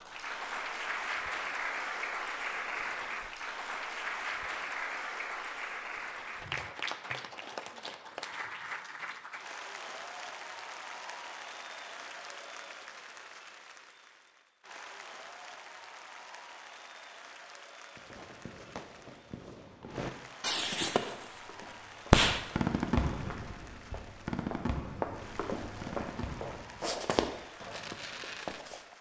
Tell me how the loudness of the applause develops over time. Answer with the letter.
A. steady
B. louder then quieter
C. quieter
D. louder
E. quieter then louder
C.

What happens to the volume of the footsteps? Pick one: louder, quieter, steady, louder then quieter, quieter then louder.
louder.